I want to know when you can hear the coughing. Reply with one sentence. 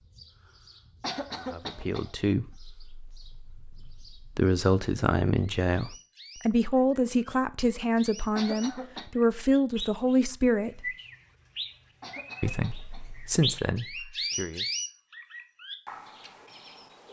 The coughing can be heard from 1.0 to 2.1 s, from 8.3 to 9.1 s and from 12.0 to 13.1 s.